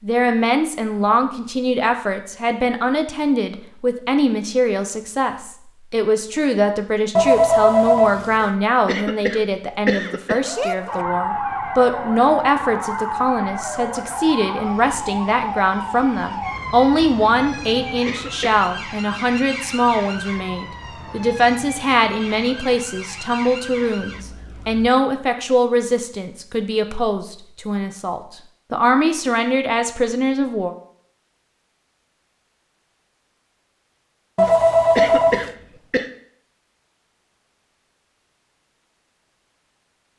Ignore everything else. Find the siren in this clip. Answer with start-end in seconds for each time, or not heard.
10.4-24.9.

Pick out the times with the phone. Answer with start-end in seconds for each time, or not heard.
7.2-8.2, 34.4-35.5.